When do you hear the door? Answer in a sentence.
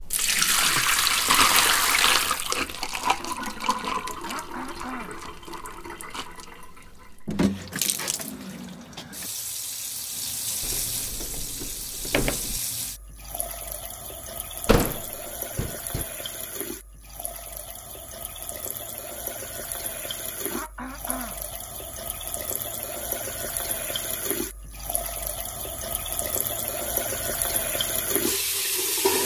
The door can be heard from 10.6 to 12.6 s and from 14.7 to 16.1 s.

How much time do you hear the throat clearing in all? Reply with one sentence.
You can hear the throat clearing for 2 seconds altogether.